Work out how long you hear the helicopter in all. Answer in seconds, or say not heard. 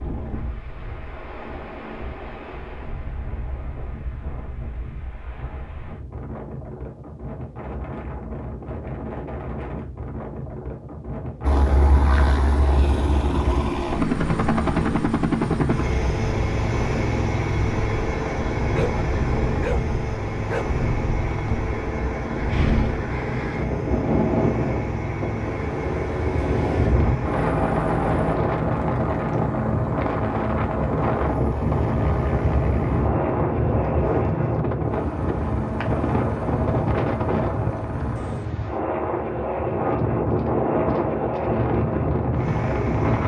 32 s.